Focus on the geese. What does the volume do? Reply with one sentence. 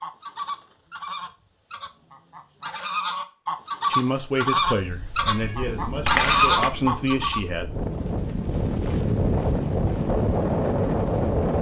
The volume of the geese goes up.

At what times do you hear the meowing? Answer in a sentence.
You can hear the meowing from 5.2 to 6.7 s.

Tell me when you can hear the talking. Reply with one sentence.
You can hear the talking from 3.9 to 7.7 s.